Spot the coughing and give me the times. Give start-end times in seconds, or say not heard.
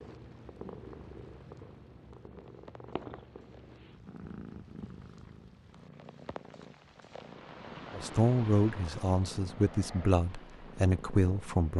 not heard.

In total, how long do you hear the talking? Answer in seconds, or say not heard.
4 s.